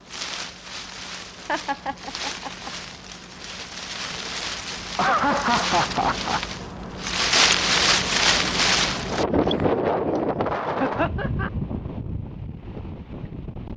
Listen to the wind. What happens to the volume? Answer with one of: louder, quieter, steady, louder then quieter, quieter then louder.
louder then quieter.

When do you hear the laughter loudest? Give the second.
5 s.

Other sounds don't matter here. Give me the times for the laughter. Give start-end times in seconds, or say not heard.
1.4-2.7, 5.0-6.4, 10.8-11.5.